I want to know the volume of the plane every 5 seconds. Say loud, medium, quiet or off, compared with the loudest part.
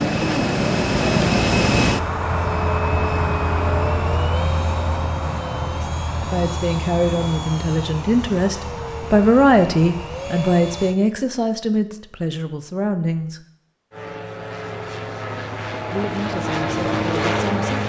loud, medium, medium, loud.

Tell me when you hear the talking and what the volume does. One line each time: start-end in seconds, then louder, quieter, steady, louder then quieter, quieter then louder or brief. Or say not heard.
5.8-13.4 louder then quieter
15.9-17.8 brief.